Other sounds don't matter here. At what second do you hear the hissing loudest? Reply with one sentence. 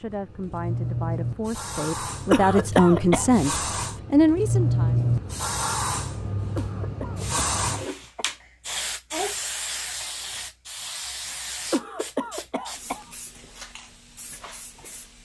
The loudest moment of the hissing is at 5 seconds.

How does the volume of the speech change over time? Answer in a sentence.
The volume of the speech goes up.